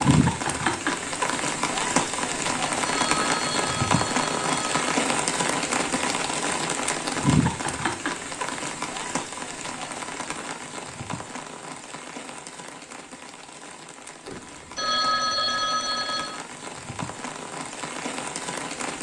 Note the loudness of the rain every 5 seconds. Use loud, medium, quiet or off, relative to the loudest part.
loud, loud, quiet, medium.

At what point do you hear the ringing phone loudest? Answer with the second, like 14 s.
15 s.